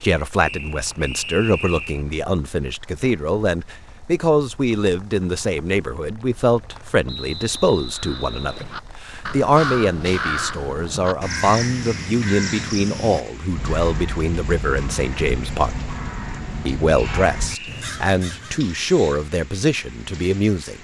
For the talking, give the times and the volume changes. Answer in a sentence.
You can hear the talking from 0.0 to 15.7 s, at a steady volume; and from 16.6 to 20.7 s, at a steady volume.